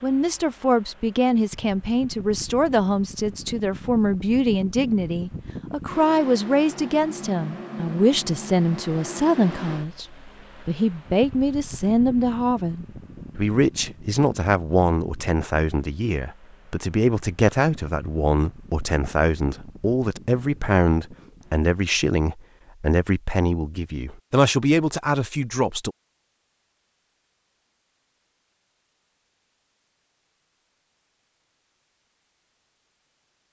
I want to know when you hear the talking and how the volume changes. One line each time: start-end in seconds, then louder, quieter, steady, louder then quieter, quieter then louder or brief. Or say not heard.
0.0-25.9 steady.